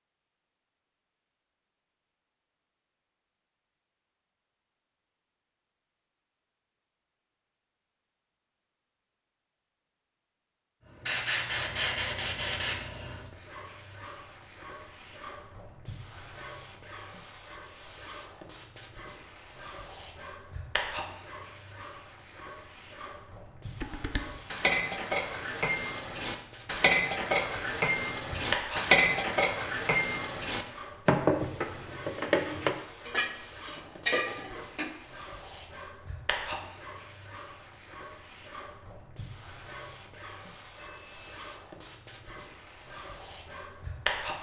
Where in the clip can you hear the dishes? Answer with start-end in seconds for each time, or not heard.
23.8-35.0.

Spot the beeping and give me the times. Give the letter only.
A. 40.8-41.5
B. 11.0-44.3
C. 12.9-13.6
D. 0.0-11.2
A.